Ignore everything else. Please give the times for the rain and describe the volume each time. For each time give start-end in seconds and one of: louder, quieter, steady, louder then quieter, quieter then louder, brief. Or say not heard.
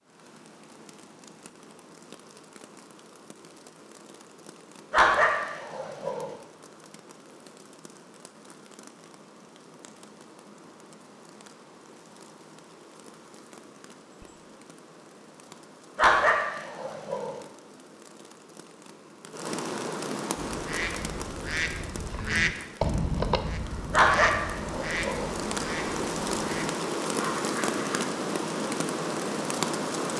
0.0-30.1 louder.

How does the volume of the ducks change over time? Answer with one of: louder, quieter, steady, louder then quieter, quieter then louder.
louder then quieter.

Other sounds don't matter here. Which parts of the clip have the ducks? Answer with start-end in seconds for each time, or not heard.
20.4-28.1.